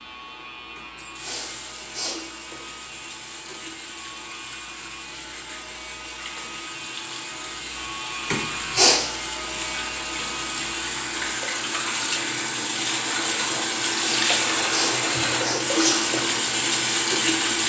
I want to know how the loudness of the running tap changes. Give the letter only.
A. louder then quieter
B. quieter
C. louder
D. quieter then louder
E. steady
C.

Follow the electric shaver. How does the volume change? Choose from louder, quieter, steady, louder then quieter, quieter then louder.
louder.